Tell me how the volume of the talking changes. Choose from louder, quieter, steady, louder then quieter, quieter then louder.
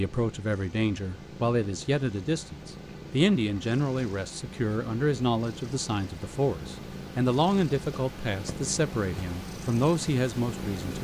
steady.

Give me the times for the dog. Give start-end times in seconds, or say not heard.
not heard.